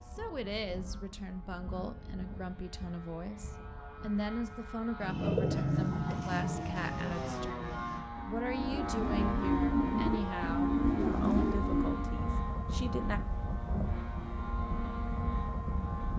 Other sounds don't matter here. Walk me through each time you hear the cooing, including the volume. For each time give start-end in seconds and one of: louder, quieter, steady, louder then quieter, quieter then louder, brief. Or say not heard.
5.0-12.1 quieter then louder.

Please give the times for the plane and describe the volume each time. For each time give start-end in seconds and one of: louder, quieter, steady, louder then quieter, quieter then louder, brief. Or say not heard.
0.0-16.1 louder.